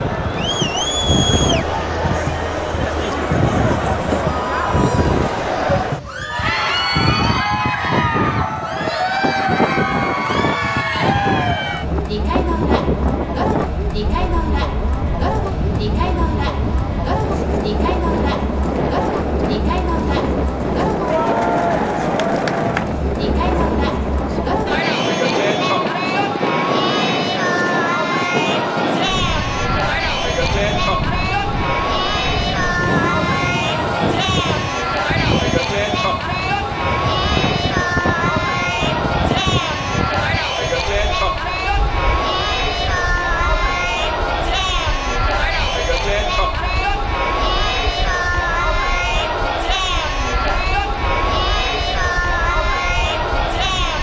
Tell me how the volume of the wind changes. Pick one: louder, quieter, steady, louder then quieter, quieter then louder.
quieter.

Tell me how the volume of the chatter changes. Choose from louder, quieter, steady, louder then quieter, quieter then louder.
steady.